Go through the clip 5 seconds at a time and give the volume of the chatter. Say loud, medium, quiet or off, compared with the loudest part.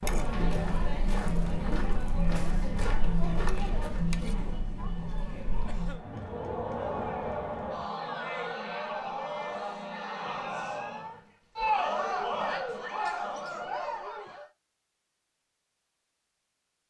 loud, loud, loud, off.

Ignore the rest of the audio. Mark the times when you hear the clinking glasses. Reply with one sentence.
The clinking glasses can't be heard in this clip.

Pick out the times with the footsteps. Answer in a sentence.
You can hear the footsteps from 0.0 to 4.0 s.